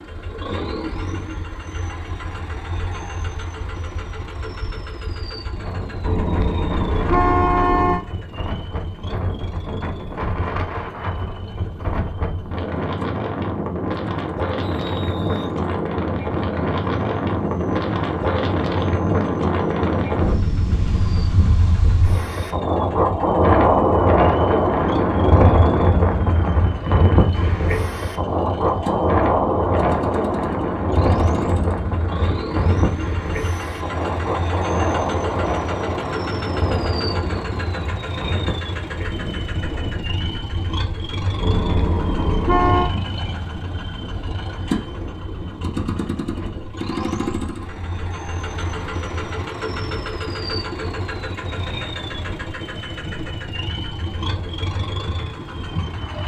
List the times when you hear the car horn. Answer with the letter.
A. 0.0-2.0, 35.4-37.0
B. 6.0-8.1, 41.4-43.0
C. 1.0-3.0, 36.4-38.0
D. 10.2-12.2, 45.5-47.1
B.